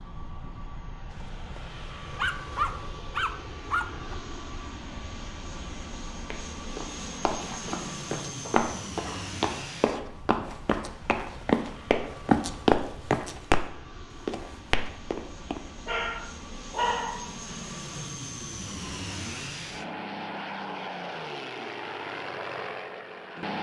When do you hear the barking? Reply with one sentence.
You can hear the barking from 2.1 to 4.2 s, from 8.4 to 10.1 s and from 15.8 to 17.4 s.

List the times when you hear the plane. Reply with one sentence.
You can hear the plane from 0.0 to 23.5 s.